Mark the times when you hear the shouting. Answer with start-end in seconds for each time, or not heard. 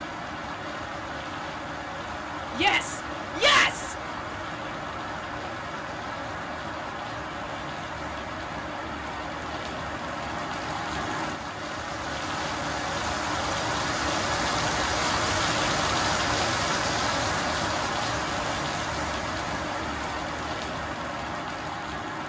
2.5-4.0.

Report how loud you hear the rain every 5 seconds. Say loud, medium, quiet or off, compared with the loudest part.
medium, medium, loud, loud, medium.